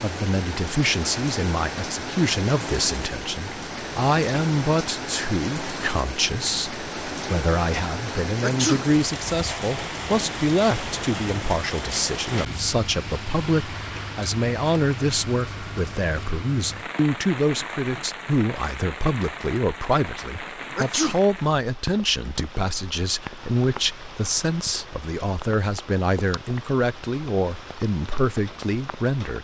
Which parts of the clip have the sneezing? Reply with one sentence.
The sneezing can be heard from 8.4 to 8.8 s and from 20.8 to 21.2 s.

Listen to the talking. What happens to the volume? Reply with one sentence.
The loudness of the talking stays about the same.